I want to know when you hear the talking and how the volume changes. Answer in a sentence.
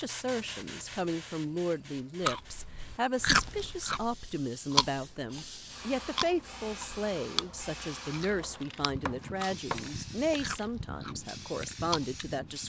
The talking can be heard from 0.0 to 12.6 s, at a steady volume.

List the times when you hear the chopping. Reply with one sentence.
You can hear the chopping from 8.4 to 10.5 s.